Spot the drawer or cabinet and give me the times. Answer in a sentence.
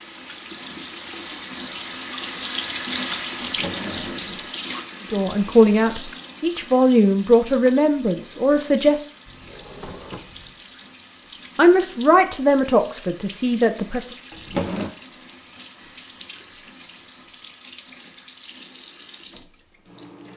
The drawer or cabinet can be heard from 3.4 to 4.5 s, from 9.2 to 10.6 s and from 14.3 to 14.9 s.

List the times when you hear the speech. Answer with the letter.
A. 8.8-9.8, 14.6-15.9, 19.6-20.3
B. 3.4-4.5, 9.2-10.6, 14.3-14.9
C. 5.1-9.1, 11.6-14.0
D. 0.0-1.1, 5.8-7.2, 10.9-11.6
C.